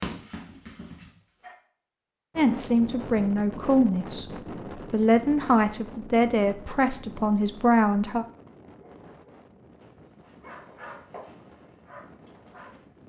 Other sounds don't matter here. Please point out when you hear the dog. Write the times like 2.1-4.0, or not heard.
0.0-1.6, 8.6-13.0.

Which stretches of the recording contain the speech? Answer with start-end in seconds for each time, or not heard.
2.4-8.2.